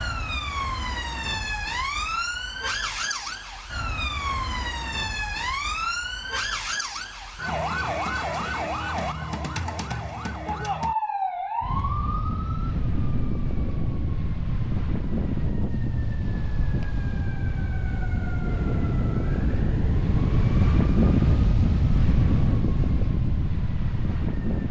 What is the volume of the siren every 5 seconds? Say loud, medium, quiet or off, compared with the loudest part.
loud, loud, loud, medium, medium.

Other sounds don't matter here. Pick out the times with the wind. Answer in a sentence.
You can hear the wind from 11.6 to 24.6 s.